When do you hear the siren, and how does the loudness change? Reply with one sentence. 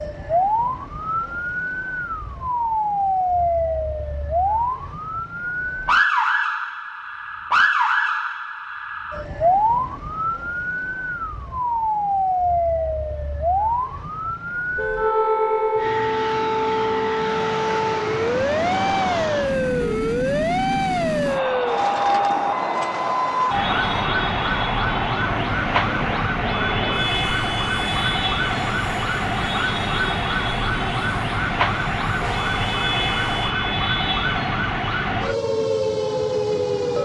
The siren can be heard from 0.0 to 37.0 s, at a steady volume.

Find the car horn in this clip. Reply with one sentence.
The car horn can be heard from 14.8 to 15.9 s and from 32.1 to 33.5 s.